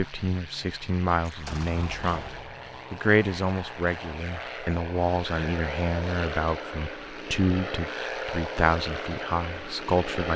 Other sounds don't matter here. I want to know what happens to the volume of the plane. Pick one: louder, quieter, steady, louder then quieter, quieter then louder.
louder.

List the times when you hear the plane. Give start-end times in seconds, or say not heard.
0.0-10.3.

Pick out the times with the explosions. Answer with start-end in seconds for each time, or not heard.
1.2-2.8.